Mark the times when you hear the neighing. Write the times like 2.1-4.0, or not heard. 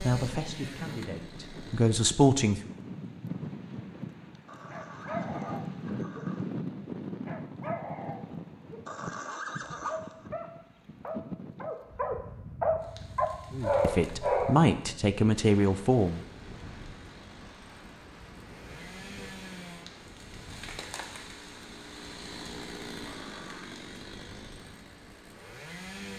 4.5-6.5, 8.8-10.3, 23.1-23.8.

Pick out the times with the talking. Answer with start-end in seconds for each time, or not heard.
0.0-2.7, 13.5-16.2.